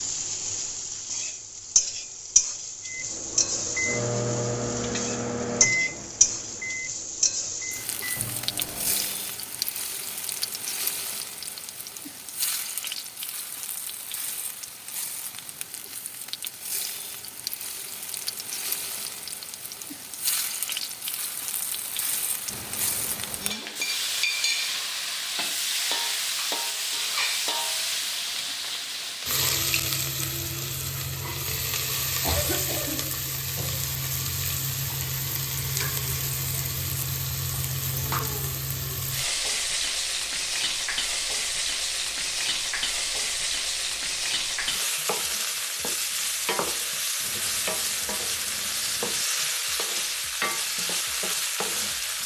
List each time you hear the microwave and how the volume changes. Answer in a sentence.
You can hear the microwave from 2.9 to 9.3 s, getting quieter.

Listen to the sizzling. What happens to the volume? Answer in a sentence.
The volume of the sizzling goes down, then up.